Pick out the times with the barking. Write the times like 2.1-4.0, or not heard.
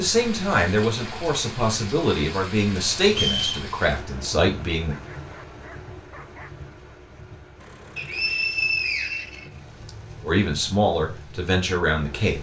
4.9-6.5.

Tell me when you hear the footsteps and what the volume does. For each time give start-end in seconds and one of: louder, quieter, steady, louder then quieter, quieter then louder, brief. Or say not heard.
not heard.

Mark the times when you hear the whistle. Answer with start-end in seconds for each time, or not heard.
3.0-3.6, 8.0-9.9.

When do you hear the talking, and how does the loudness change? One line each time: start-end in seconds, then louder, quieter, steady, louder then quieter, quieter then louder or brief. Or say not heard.
0.0-5.0 steady
10.2-12.3 brief.